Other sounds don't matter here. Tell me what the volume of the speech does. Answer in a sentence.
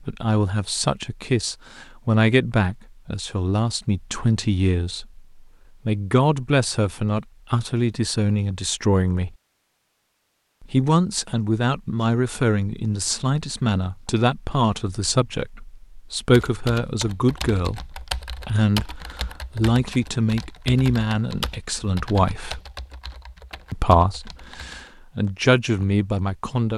The volume of the speech stays about the same.